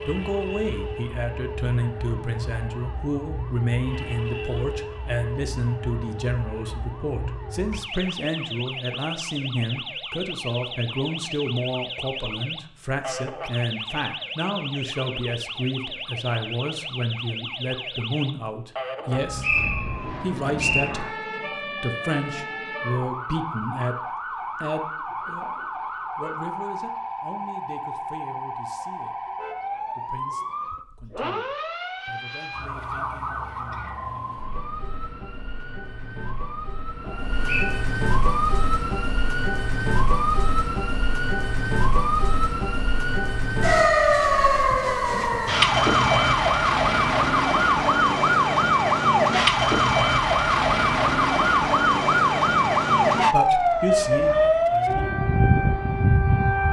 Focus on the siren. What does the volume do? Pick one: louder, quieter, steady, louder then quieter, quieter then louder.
louder.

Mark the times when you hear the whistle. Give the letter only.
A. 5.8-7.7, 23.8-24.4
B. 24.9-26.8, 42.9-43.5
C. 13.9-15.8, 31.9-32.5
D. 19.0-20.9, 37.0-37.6
D.